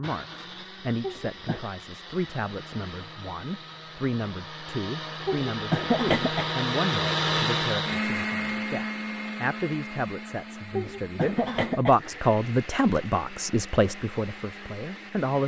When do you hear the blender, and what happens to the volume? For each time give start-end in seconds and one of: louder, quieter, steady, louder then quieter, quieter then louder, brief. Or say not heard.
0.0-15.4 louder then quieter.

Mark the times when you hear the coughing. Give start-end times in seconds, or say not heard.
1.0-1.6, 5.2-6.5, 10.8-11.9.